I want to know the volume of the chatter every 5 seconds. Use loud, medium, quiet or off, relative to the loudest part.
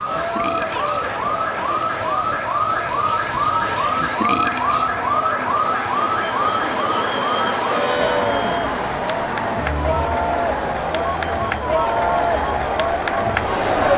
medium, medium, loud.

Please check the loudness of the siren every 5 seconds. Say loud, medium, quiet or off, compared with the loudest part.
loud, loud, medium.